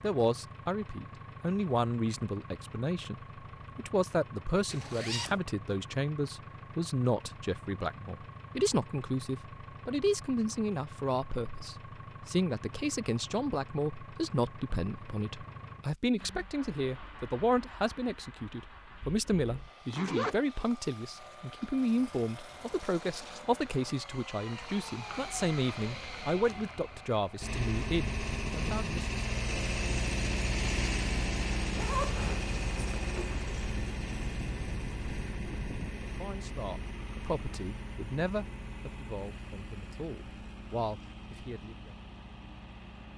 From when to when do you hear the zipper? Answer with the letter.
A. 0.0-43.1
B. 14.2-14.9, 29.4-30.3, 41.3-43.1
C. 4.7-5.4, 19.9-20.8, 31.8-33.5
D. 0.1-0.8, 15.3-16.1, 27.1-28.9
C.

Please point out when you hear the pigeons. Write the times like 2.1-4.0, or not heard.
not heard.